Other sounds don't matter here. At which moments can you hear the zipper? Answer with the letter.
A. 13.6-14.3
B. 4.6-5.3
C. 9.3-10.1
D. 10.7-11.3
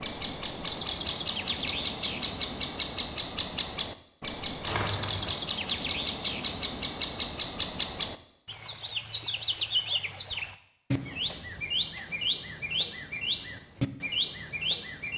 B.